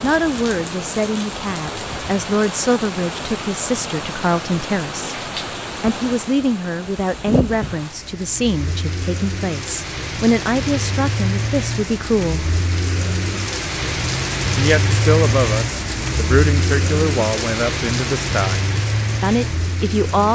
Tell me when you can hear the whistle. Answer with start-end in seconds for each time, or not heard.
not heard.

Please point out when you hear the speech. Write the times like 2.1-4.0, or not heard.
0.0-5.2, 5.8-12.5, 14.6-18.6, 19.2-20.2.